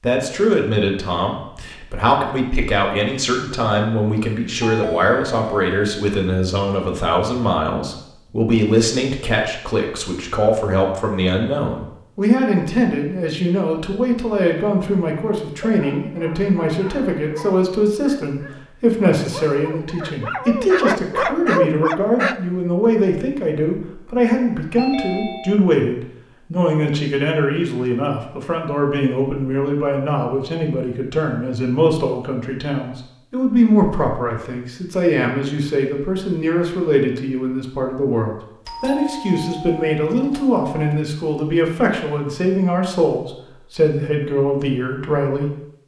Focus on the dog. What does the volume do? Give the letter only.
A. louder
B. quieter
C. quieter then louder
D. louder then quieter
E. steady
A.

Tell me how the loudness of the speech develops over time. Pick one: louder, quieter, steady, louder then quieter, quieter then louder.
steady.